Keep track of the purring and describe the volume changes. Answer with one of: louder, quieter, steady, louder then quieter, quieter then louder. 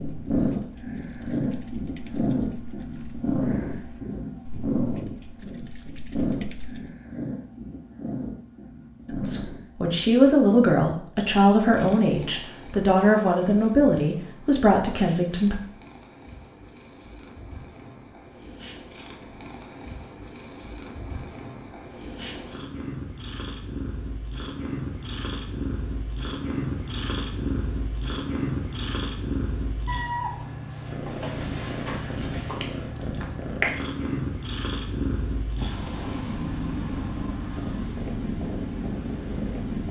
quieter then louder.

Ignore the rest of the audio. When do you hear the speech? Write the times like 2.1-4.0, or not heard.
9.1-15.6.